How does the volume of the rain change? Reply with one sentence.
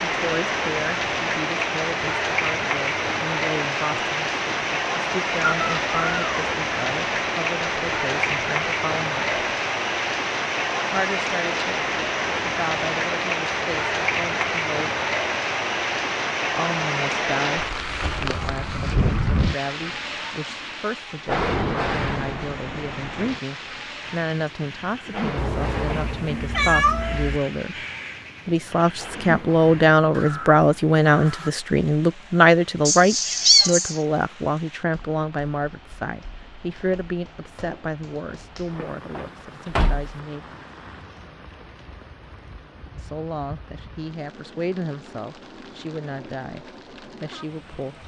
The loudness of the rain goes down.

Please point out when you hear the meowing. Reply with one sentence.
The meowing can be heard from 5.6 to 6.5 s, from 25.4 to 27.4 s and from 32.9 to 34.0 s.